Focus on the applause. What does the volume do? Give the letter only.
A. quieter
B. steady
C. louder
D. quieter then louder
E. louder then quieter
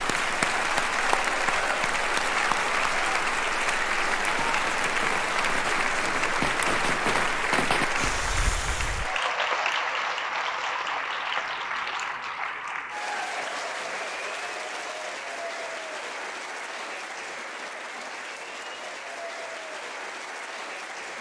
A.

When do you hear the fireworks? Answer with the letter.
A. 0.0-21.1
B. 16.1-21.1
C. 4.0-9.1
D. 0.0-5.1
C.